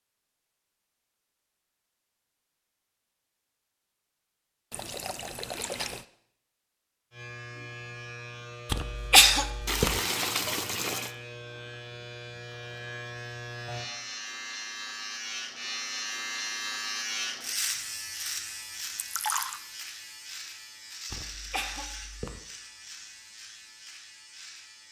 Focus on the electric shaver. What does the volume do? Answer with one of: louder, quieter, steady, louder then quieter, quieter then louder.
louder then quieter.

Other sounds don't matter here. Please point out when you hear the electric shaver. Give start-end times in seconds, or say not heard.
7.1-24.8.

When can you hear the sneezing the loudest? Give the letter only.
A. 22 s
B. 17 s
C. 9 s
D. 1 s
C.